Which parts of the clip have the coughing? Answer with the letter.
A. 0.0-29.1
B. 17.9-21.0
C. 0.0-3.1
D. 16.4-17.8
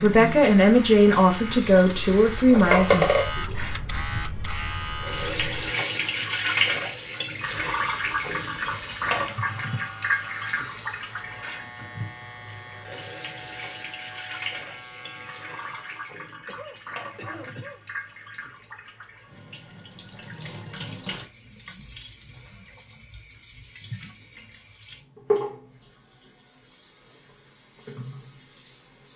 D.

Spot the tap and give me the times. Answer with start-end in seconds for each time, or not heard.
0.0-29.1.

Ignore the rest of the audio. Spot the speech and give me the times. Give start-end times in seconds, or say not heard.
0.0-3.1.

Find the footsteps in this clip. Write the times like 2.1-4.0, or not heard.
not heard.